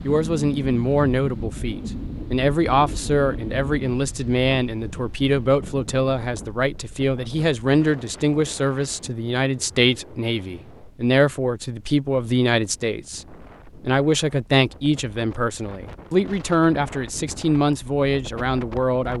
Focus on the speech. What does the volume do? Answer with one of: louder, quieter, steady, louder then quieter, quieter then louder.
steady.